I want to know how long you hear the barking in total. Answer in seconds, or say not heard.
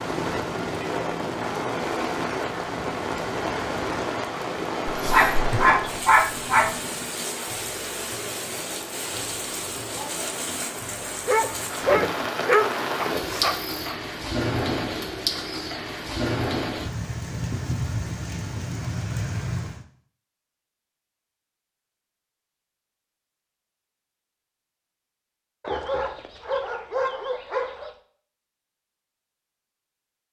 7 s.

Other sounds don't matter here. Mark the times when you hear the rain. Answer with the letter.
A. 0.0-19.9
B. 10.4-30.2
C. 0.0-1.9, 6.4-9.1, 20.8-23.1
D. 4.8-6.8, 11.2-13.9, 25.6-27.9
A.